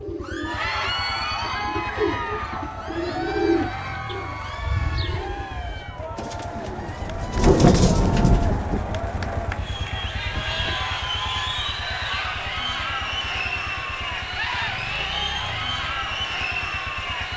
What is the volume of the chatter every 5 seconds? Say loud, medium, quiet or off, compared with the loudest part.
loud, medium, loud, loud.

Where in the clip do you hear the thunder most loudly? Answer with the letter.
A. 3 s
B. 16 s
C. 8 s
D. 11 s
C.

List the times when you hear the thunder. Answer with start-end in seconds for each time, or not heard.
6.8-10.8.